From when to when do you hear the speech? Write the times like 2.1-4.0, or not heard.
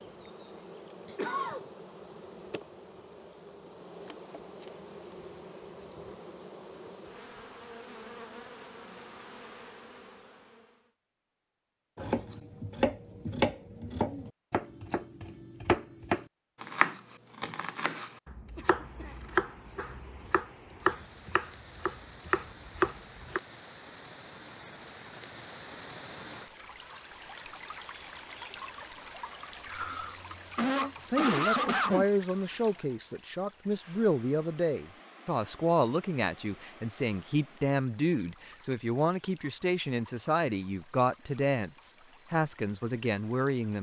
31.0-43.7.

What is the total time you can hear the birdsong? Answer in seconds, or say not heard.
not heard.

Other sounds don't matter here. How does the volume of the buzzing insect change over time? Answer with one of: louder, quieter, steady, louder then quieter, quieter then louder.
steady.